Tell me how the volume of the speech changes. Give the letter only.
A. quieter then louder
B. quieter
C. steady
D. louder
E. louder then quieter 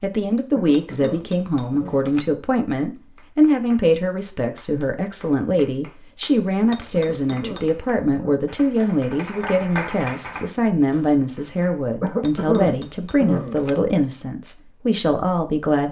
C.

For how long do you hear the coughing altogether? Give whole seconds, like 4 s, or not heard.
5 s.